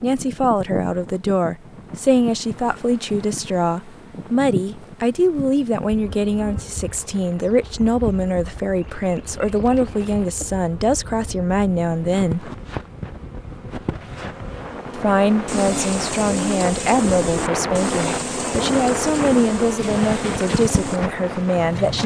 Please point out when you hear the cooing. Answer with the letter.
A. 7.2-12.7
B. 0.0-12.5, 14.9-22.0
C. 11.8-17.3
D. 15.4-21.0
D.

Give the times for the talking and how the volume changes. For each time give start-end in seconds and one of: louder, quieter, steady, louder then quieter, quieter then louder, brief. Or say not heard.
0.0-12.5 steady
14.9-22.0 steady.